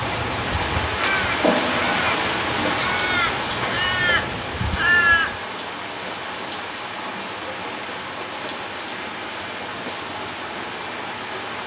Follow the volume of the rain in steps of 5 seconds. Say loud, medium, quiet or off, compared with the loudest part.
loud, medium, medium.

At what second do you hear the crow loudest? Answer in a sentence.
The loudest moment of the crow is at 5 seconds.